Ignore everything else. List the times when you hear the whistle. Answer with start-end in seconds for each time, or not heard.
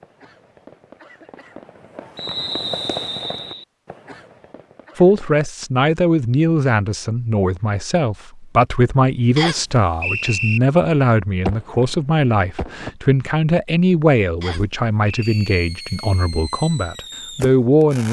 2.1-3.6, 9.3-10.6, 14.4-15.4.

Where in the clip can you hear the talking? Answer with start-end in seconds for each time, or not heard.
5.0-18.0.